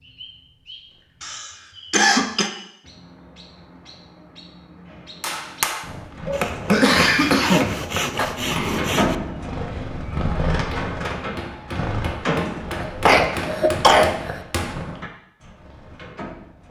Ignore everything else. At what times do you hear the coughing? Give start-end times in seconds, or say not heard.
1.2-2.5, 6.7-8.2, 12.7-14.4.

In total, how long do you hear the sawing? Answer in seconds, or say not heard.
3 s.